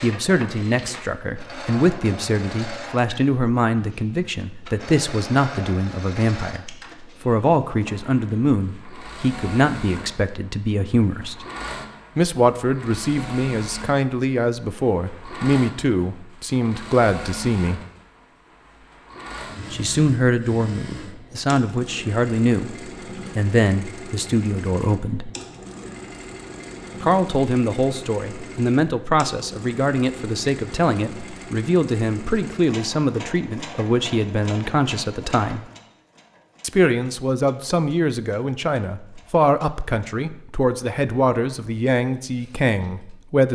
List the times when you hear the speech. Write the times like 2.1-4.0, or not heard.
0.0-11.4, 12.2-17.8, 19.7-22.8, 23.4-25.3, 27.0-35.6, 36.6-43.5.